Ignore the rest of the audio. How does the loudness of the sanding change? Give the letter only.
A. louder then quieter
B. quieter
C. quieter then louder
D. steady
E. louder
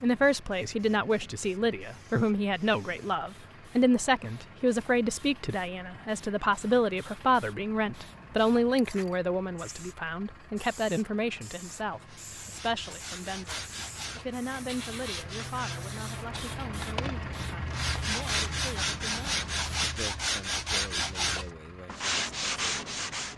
E.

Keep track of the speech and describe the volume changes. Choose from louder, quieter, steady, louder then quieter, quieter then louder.
quieter.